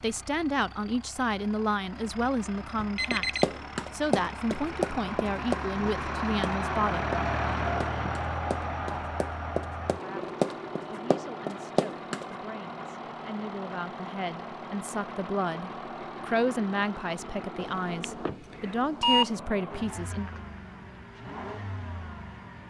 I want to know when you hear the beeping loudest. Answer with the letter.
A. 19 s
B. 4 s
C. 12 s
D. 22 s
A.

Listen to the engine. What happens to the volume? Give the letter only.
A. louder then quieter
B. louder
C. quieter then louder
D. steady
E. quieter
A.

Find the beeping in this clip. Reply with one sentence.
You can hear the beeping from 2.8 to 3.5 s and from 17.6 to 19.3 s.